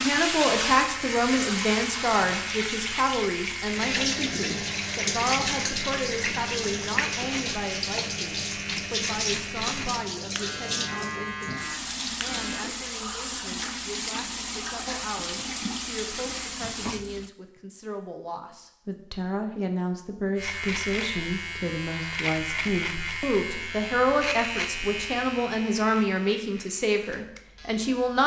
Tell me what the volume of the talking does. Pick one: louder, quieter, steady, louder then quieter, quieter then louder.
quieter then louder.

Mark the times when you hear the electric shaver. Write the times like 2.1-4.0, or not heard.
0.0-12.7, 20.4-28.2.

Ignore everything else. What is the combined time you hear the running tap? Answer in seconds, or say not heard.
17 s.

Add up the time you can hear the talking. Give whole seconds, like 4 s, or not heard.
28 s.